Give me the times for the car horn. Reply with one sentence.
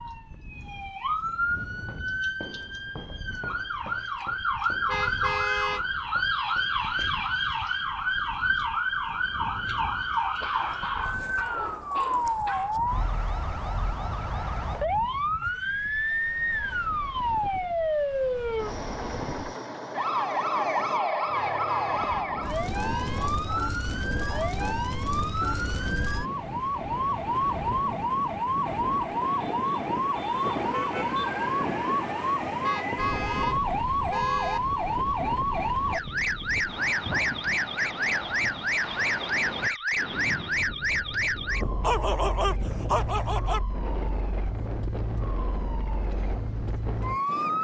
You can hear the car horn from 4.8 to 5.8 s, from 21.3 to 23.3 s and from 32.6 to 34.6 s.